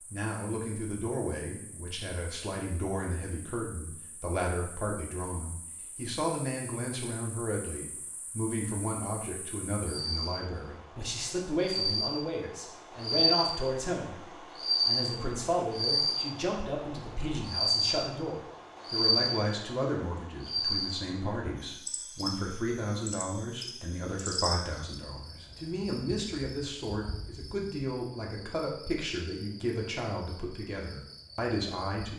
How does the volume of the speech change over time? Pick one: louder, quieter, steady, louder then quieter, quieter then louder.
steady.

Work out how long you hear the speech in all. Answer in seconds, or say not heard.
32 s.